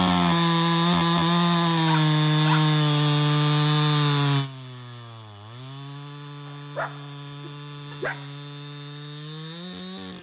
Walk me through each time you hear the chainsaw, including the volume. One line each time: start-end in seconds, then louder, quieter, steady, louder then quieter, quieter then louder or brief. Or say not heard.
0.0-10.1 quieter.